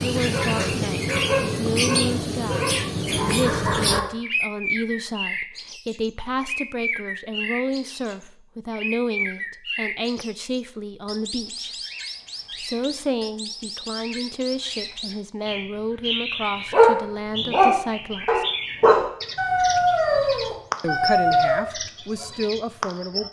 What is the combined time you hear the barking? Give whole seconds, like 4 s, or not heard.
9 s.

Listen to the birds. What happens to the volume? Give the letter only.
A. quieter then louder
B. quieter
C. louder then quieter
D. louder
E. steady
B.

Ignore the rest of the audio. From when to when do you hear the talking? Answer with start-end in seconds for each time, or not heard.
0.0-11.8, 12.6-18.4, 20.8-23.2.